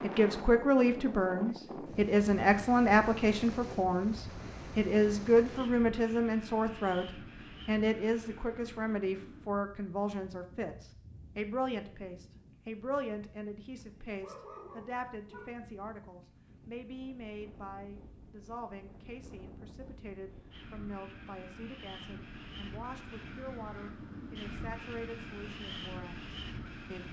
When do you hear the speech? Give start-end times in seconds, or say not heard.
0.0-27.0.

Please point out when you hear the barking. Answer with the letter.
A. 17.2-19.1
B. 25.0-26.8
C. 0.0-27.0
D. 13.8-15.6
D.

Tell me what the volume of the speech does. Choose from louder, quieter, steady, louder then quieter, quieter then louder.
quieter.